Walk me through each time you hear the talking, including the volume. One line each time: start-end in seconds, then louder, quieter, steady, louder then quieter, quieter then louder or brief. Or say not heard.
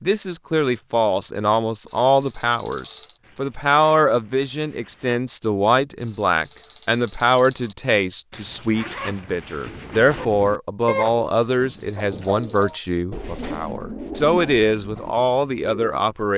0.0-16.3 steady.